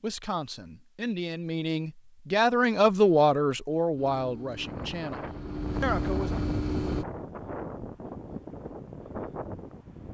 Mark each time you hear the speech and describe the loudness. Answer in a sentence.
You can hear the speech from 0.0 to 6.4 s, getting louder then quieter.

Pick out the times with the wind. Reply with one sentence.
The wind can be heard from 4.5 to 10.0 s.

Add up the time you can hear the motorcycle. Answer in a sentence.
You can hear the motorcycle for 3 seconds altogether.